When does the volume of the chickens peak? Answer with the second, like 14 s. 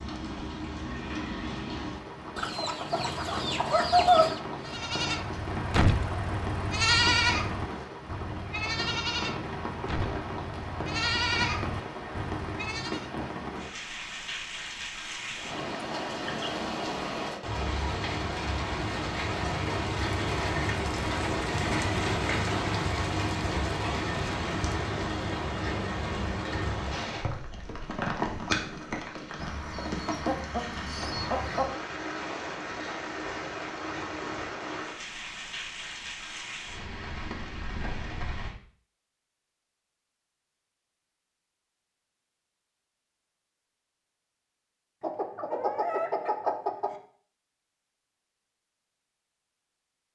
4 s.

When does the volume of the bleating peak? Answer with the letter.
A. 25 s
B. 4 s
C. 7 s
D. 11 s
C.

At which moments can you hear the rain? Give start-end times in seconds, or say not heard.
0.0-38.5.